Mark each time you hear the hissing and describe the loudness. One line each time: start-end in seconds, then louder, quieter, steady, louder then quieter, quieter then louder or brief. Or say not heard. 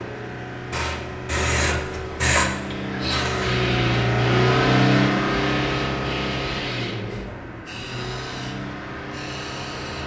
0.0-10.0 quieter.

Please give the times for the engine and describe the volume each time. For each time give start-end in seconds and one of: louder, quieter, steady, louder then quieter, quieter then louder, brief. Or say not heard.
0.0-10.0 louder then quieter.